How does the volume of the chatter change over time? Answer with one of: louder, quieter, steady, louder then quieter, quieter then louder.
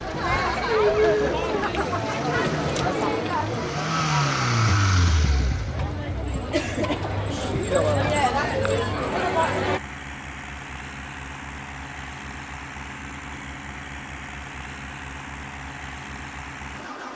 quieter then louder.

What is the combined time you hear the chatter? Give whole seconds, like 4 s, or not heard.
10 s.